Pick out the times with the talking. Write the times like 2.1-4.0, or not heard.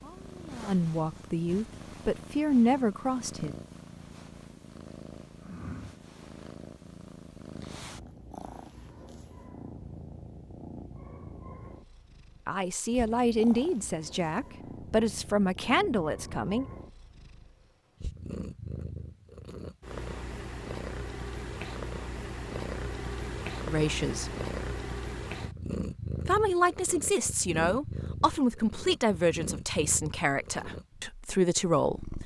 0.0-3.5, 12.4-16.6, 23.6-24.3, 26.2-32.1.